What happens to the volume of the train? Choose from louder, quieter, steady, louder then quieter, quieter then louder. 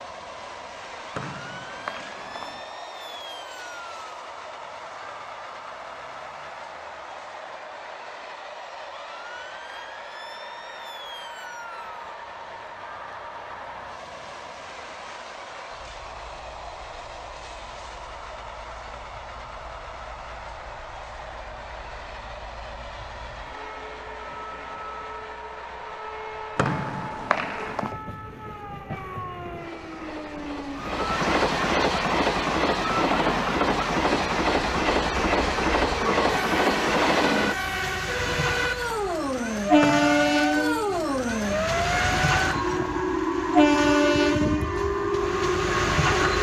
louder.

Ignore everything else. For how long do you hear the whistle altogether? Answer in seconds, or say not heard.
4 s.